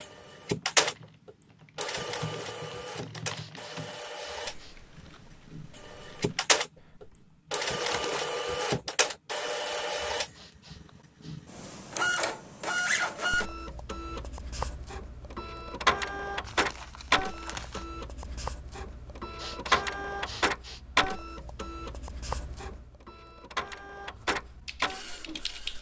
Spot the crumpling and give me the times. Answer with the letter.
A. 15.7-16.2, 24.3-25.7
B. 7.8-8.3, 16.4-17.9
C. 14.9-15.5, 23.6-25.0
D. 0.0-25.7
B.